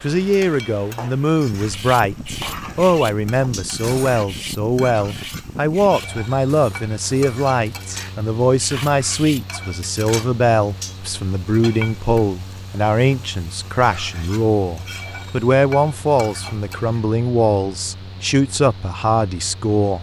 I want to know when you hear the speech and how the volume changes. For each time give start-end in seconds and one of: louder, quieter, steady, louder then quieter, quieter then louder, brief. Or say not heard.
0.0-19.9 steady.